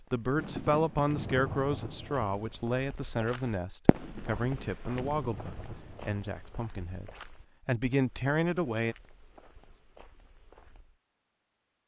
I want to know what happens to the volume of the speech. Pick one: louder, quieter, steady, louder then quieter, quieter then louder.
quieter then louder.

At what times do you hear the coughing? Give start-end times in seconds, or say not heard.
not heard.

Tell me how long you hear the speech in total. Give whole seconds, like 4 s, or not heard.
9 s.